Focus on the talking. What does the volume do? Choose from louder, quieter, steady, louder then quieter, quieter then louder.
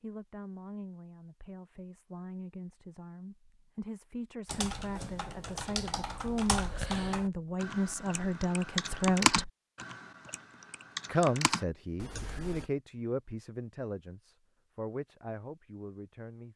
louder then quieter.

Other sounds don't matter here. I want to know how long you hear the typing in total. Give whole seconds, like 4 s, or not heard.
8 s.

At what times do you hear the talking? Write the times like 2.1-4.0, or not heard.
0.0-9.5, 11.1-16.5.